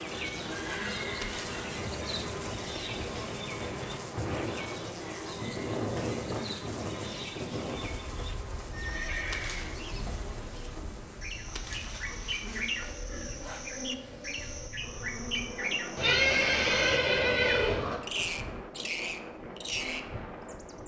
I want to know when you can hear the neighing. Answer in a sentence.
The neighing can be heard from 0.4 to 1.7 s, from 8.7 to 9.8 s and from 15.9 to 18.0 s.